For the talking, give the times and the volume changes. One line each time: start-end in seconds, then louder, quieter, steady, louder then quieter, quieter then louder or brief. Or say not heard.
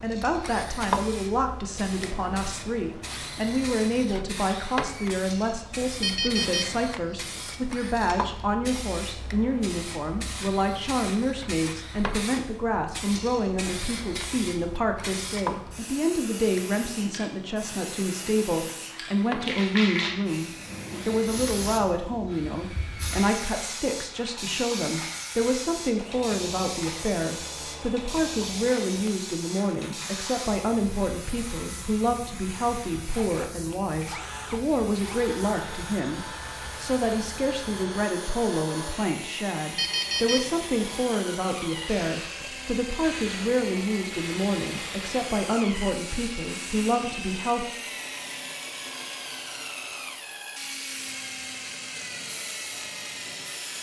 0.0-47.6 steady.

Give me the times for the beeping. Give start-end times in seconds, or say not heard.
6.0-7.3, 39.8-41.0.